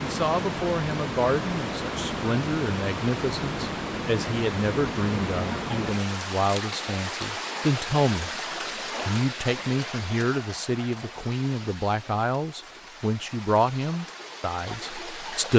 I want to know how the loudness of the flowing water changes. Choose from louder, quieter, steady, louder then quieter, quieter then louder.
quieter.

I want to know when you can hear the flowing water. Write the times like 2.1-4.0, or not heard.
0.0-15.5.